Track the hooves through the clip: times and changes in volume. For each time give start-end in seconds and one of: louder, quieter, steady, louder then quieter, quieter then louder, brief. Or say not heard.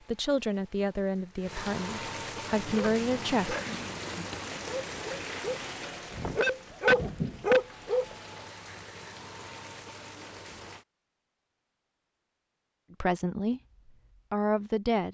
not heard.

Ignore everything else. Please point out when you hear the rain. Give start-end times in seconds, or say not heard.
0.0-10.8.